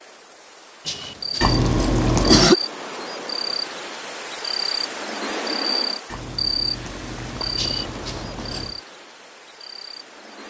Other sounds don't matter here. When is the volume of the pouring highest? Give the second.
2 s.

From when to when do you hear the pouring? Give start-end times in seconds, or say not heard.
1.4-2.5, 6.0-8.8.